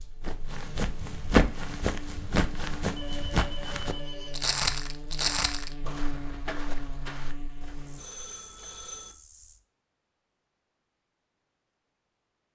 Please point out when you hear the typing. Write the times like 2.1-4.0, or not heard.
not heard.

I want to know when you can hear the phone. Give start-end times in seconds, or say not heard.
3.0-4.3, 7.6-9.2.